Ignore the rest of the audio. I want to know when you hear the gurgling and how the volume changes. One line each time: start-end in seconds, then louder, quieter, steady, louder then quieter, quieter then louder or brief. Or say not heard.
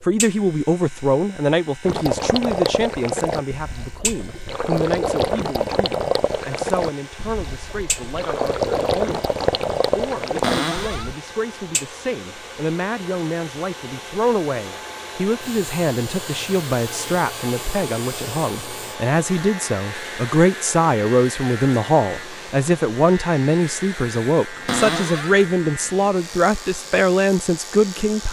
1.9-11.2 steady.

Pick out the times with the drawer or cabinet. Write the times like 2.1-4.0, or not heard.
10.4-11.1, 24.6-25.4.